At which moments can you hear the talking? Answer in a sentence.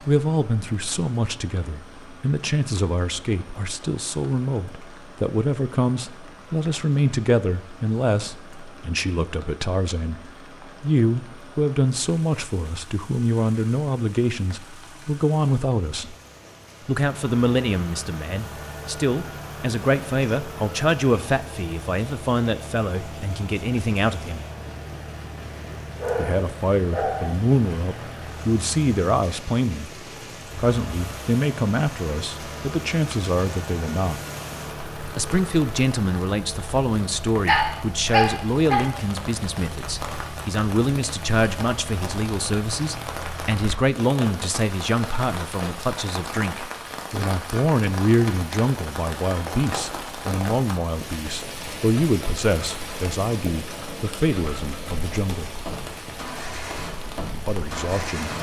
The talking can be heard from 0.0 to 16.1 s, from 16.9 to 24.4 s, from 26.1 to 34.2 s, from 35.1 to 55.5 s and from 57.3 to 58.3 s.